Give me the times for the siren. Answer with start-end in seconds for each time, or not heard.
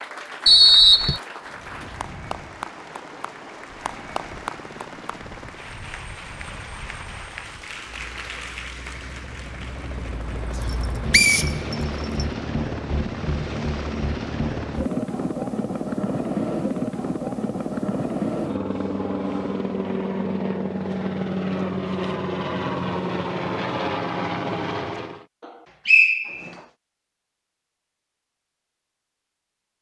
not heard.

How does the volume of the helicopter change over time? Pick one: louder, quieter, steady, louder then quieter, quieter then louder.
louder.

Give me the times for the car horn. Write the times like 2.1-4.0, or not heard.
not heard.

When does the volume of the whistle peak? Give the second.
1 s.